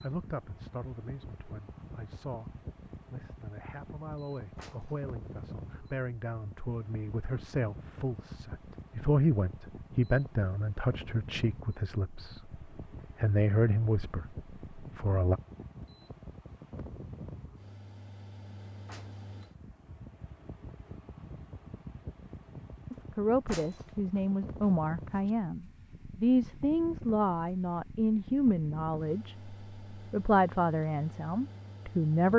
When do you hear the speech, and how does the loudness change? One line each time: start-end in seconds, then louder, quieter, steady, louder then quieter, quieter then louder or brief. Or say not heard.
0.0-15.4 louder
22.9-32.3 steady.